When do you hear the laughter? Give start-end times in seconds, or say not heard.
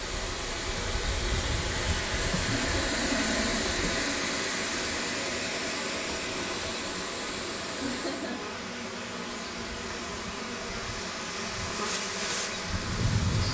2.5-3.6, 7.8-8.4.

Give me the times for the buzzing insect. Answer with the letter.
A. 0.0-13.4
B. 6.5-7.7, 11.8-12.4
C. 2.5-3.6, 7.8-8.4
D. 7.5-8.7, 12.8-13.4
A.